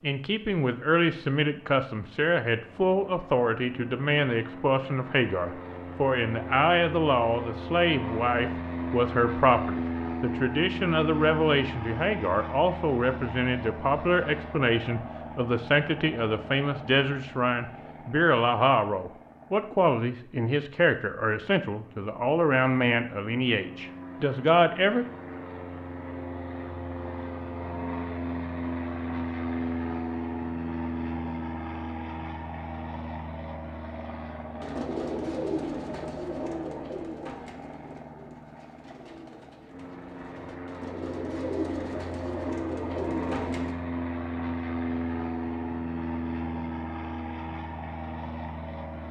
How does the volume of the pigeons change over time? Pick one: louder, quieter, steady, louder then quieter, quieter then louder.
quieter then louder.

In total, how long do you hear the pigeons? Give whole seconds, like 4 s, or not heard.
9 s.